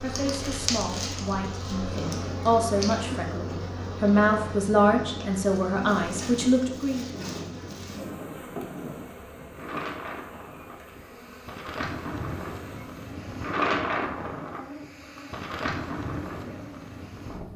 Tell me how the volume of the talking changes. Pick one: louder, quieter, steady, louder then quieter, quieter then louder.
louder.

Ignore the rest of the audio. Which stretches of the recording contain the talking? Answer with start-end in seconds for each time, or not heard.
0.0-7.0.